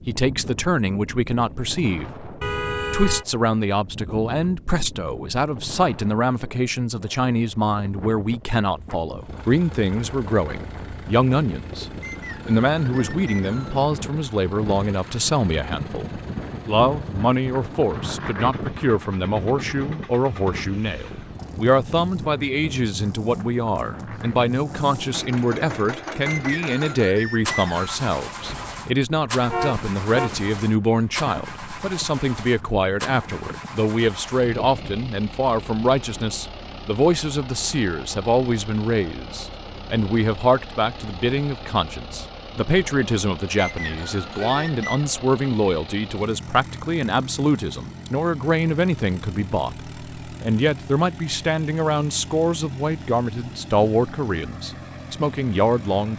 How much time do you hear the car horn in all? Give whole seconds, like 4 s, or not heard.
2 s.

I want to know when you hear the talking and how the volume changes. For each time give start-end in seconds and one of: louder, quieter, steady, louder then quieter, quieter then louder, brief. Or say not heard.
0.1-56.1 steady.